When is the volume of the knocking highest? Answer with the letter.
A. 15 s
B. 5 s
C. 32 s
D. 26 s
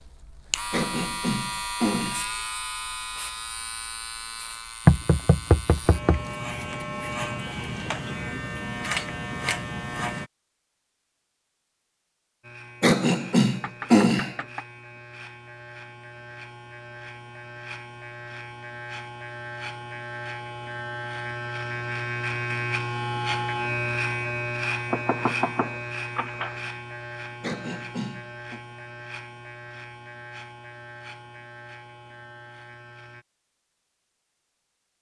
B.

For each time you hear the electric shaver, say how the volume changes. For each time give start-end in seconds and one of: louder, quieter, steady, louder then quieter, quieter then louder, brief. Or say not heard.
0.0-10.3 quieter then louder
12.4-33.2 louder then quieter.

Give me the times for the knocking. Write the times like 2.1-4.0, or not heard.
4.8-6.2, 13.6-14.7, 24.9-26.6.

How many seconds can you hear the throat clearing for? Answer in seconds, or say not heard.
4 s.